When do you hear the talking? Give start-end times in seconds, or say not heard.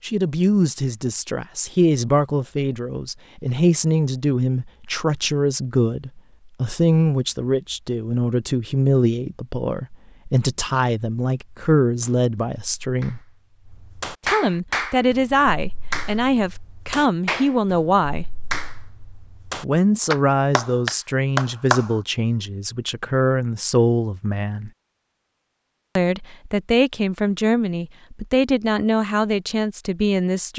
0.0-13.2, 14.2-18.2, 19.6-24.7, 25.9-30.5.